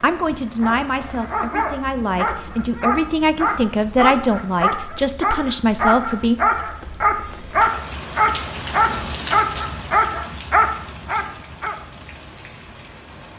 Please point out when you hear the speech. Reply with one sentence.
You can hear the speech from 0.0 to 6.3 s.